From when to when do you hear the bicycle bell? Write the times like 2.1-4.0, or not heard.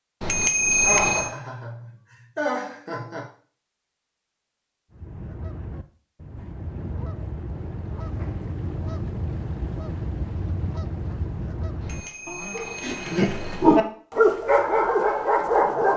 0.2-1.3, 11.8-13.8.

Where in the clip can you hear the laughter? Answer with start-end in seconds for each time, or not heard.
0.7-3.2, 12.8-13.4.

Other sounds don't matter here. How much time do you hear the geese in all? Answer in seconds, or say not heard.
8 s.